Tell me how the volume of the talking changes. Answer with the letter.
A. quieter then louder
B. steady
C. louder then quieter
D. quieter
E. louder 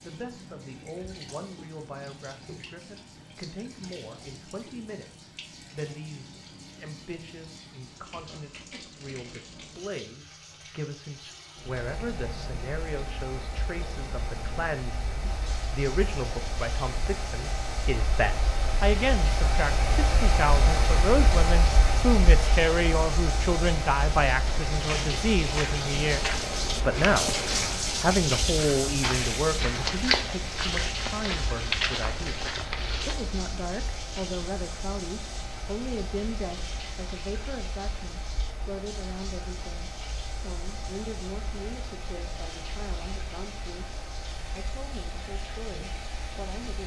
C.